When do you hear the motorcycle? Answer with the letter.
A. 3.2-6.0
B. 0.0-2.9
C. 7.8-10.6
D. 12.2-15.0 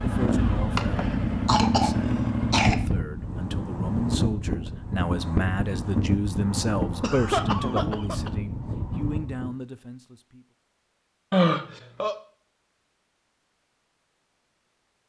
B.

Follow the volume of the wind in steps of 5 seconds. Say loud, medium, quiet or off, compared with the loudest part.
loud, loud, off.